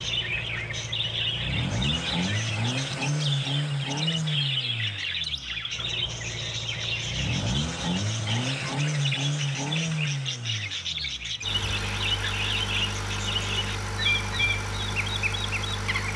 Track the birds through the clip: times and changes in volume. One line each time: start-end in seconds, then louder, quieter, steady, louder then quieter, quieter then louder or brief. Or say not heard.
0.0-16.1 steady.